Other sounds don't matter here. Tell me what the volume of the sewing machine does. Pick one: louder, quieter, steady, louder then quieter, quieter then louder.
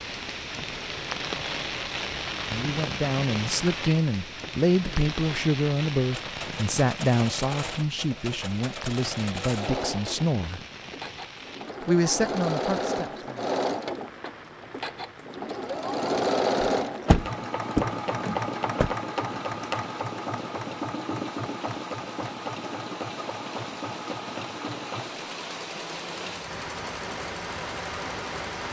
louder then quieter.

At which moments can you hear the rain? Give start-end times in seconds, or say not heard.
0.0-28.6.